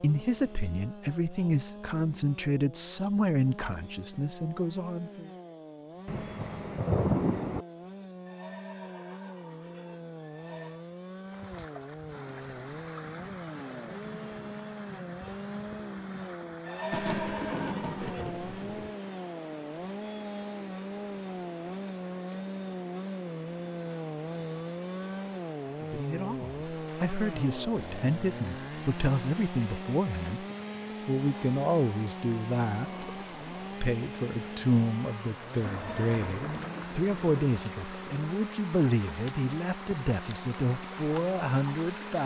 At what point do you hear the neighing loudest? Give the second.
17 s.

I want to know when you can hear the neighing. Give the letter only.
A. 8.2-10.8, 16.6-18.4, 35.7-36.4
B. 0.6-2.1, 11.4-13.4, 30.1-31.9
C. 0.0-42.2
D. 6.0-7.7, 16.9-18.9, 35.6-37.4
A.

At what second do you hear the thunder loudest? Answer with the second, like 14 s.
7 s.